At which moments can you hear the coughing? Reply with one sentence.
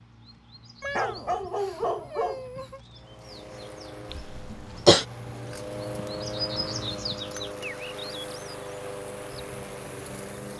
The coughing can be heard from 4.1 to 5.0 s.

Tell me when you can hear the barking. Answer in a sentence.
You can hear the barking from 0.8 to 2.8 s.